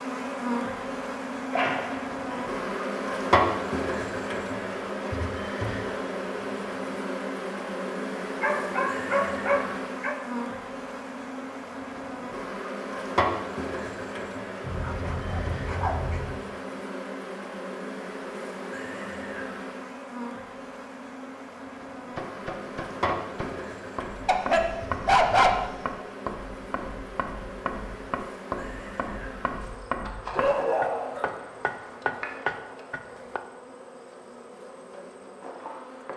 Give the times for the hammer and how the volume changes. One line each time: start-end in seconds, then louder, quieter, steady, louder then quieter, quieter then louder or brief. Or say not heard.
22.1-33.4 louder.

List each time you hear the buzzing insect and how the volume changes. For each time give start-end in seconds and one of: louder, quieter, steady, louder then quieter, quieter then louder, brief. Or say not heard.
0.0-36.1 quieter.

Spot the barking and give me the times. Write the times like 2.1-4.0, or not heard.
1.5-2.6, 8.4-10.2, 14.6-16.4, 24.2-26.1, 30.4-31.3.